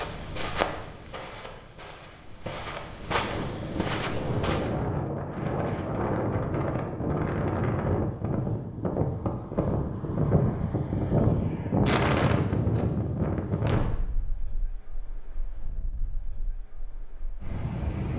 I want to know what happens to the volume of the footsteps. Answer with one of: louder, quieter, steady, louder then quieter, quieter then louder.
quieter then louder.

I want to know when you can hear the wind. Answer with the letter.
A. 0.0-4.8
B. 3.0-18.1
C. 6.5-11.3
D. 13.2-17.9
B.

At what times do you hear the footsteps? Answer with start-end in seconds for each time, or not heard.
0.0-4.8.